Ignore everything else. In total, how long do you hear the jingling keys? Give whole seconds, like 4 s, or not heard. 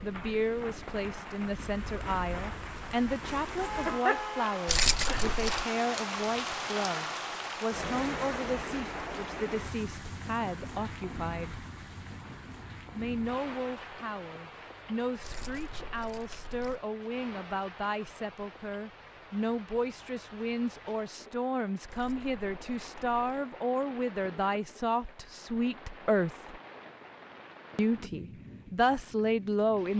4 s.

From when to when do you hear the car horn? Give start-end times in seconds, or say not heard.
3.5-4.6.